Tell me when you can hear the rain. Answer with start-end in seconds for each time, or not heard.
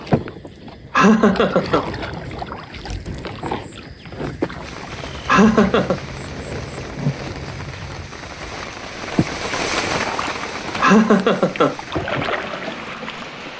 4.6-13.5.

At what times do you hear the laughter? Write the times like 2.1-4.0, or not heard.
0.9-1.9, 5.2-6.0, 10.8-11.8.